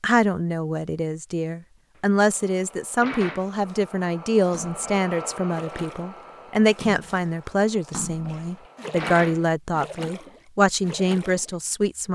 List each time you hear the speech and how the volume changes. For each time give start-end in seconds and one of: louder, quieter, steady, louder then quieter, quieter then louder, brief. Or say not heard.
0.0-12.1 steady.